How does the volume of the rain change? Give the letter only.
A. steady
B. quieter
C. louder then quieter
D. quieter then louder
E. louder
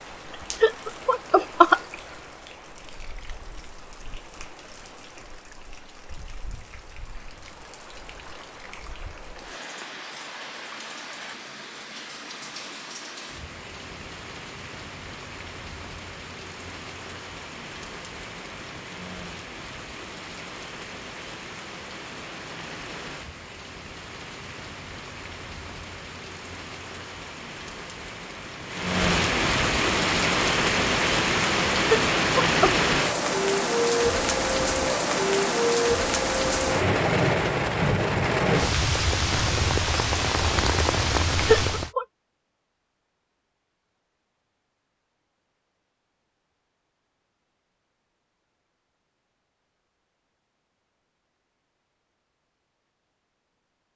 E.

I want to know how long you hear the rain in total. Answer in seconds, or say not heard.
42 s.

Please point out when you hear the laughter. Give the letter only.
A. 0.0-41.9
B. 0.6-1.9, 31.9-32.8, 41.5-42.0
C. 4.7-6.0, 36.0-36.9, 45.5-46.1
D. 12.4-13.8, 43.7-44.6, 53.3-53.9
B.